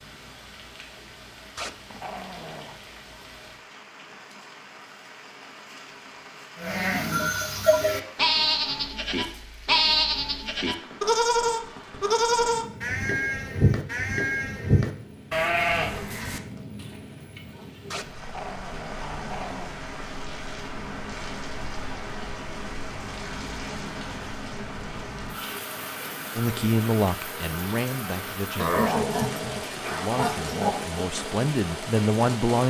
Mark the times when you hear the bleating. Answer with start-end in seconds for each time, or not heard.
6.5-17.8.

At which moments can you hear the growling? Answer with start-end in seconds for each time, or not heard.
1.6-2.8, 17.9-19.8, 28.6-30.9.